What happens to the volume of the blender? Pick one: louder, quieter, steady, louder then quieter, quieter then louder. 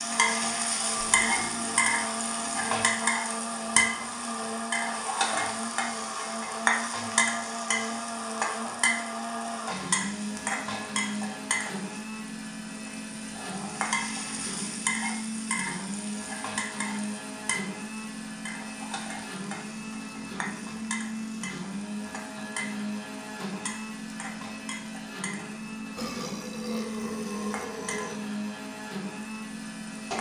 steady.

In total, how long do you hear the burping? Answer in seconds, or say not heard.
5 s.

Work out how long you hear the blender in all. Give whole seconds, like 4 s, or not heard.
30 s.